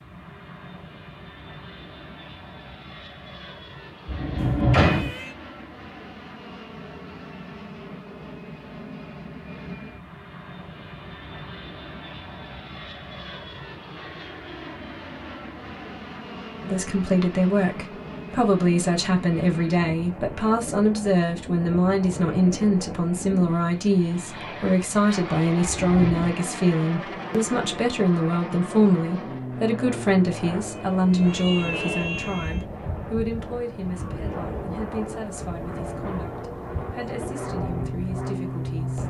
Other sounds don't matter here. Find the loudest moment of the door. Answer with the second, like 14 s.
5 s.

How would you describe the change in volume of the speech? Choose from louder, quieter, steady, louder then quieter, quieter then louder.
quieter.